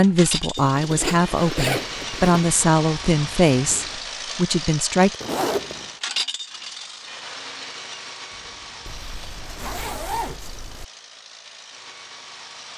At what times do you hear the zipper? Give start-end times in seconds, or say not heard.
0.6-2.4, 5.2-5.9, 8.8-10.8.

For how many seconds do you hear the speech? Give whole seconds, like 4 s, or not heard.
5 s.